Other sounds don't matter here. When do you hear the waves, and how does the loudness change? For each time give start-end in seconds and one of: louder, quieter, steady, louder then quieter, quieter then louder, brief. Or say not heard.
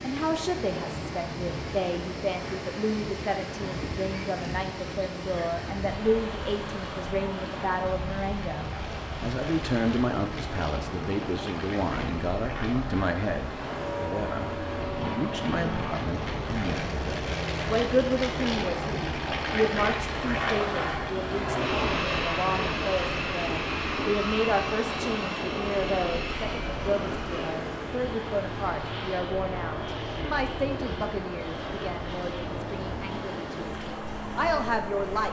0.0-35.2 steady.